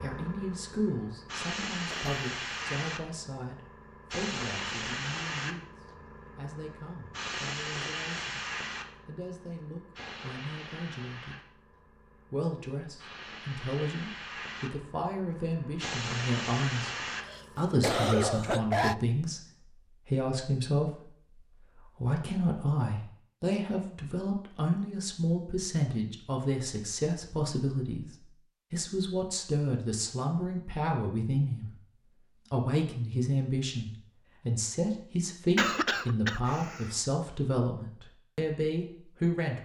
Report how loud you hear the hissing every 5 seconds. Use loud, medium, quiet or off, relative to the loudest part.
loud, loud, medium, loud, off, off, off, off.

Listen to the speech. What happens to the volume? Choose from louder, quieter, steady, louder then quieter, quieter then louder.
louder.